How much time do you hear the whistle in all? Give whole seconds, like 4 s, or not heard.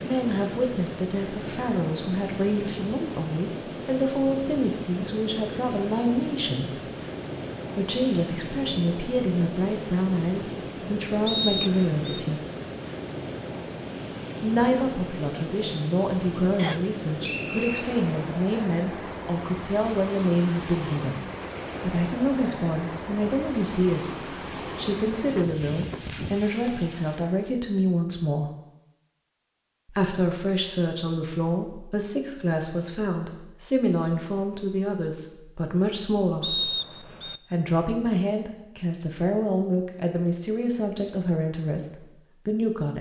3 s.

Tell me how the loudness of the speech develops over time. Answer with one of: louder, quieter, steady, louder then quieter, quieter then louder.
steady.